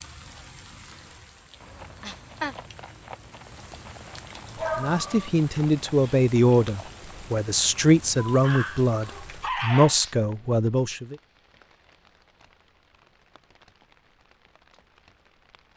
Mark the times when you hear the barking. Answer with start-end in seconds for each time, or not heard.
4.5-5.3, 8.2-10.2.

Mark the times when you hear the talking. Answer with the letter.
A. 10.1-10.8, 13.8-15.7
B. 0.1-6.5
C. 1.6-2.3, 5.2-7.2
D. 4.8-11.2
D.